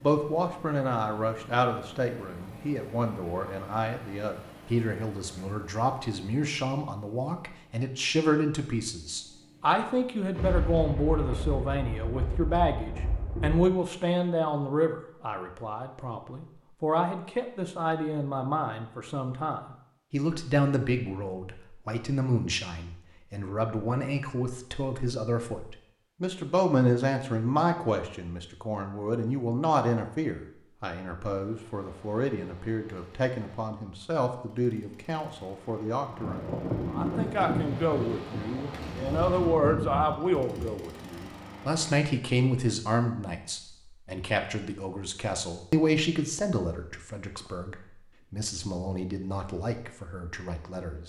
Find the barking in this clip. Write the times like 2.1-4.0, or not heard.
not heard.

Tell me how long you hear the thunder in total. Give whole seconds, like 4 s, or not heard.
8 s.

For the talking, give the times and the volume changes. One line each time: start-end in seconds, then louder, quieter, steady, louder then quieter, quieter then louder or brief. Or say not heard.
0.0-51.0 steady.